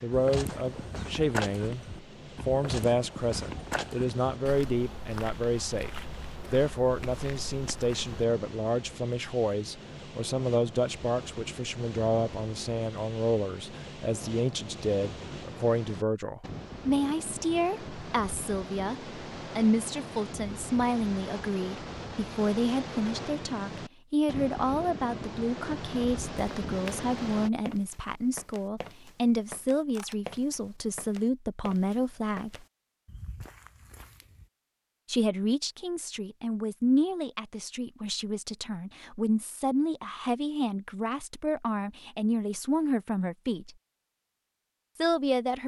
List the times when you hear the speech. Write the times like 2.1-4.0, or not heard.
0.0-32.6, 35.0-43.7, 45.0-45.6.